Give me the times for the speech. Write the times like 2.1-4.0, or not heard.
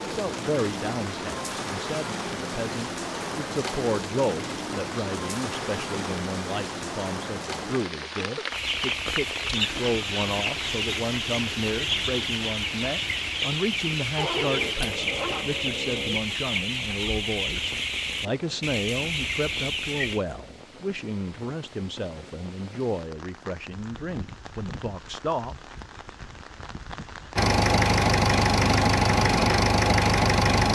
0.0-25.6.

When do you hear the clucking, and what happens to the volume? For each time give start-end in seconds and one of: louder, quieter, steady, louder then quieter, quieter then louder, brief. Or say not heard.
8.5-20.2 steady.